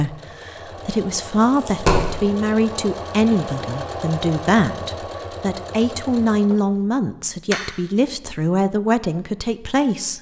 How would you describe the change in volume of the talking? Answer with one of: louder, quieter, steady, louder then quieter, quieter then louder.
steady.